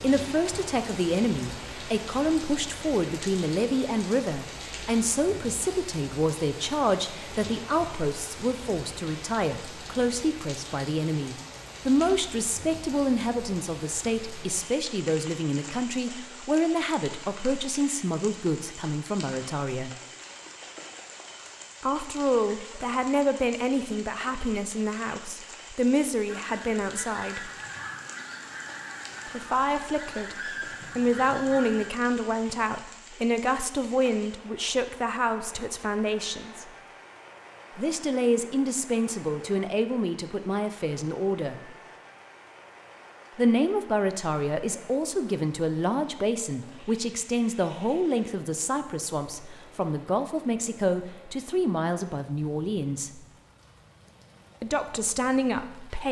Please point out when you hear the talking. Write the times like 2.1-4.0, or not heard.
0.0-20.0, 21.8-27.5, 29.3-36.6, 37.8-41.8, 43.4-53.2, 54.6-56.0.